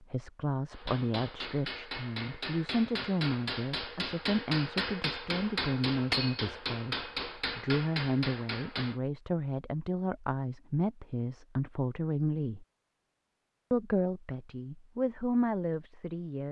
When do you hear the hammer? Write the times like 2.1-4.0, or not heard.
0.7-9.0.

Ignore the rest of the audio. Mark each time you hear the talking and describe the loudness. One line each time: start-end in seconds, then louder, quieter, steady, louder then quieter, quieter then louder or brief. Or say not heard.
0.0-12.7 steady
13.7-16.4 brief.